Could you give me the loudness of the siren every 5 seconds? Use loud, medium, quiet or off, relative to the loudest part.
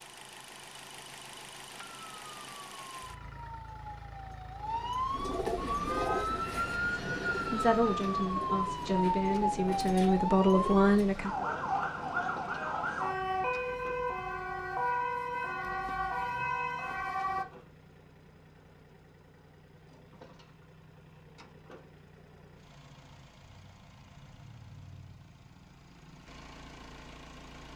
medium, loud, loud, loud, off, off.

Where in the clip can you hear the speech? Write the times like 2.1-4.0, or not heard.
7.5-11.4.